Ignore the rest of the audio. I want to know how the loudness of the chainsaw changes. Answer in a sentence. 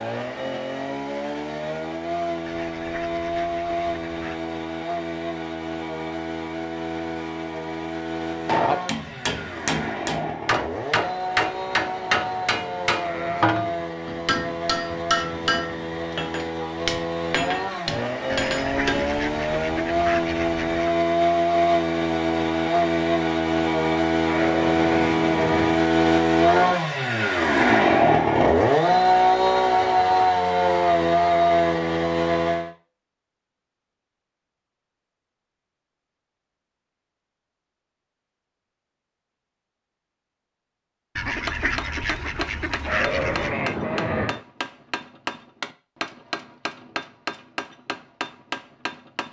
The loudness of the chainsaw goes up.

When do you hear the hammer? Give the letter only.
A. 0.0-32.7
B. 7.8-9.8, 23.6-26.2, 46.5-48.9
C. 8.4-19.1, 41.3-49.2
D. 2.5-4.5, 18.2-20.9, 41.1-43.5
C.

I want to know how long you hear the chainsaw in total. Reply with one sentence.
You can hear the chainsaw for 33 seconds altogether.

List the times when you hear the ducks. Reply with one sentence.
You can hear the ducks from 2.5 to 4.5 s, from 18.2 to 20.9 s and from 41.1 to 43.5 s.